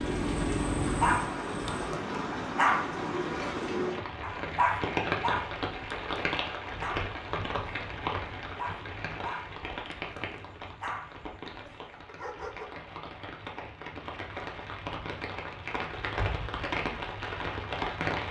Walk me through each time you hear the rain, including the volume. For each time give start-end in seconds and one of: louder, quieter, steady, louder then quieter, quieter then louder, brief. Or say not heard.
0.0-18.2 quieter then louder.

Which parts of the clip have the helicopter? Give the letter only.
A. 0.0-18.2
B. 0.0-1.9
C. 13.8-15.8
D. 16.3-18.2
B.